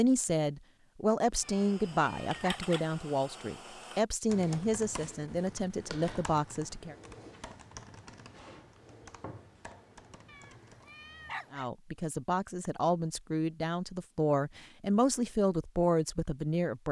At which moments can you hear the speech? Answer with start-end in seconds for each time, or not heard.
0.0-7.0, 11.5-16.8.